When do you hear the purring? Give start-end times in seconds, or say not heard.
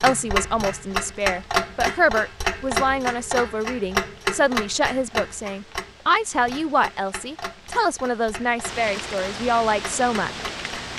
not heard.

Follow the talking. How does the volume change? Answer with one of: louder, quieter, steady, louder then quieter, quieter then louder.
steady.